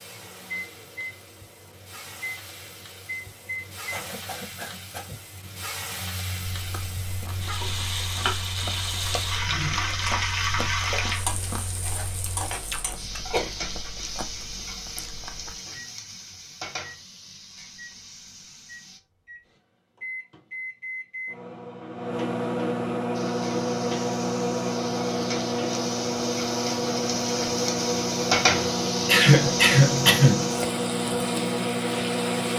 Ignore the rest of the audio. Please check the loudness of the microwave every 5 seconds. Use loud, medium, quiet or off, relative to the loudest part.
quiet, quiet, quiet, quiet, loud, loud, loud.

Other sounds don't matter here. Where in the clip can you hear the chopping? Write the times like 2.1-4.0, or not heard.
not heard.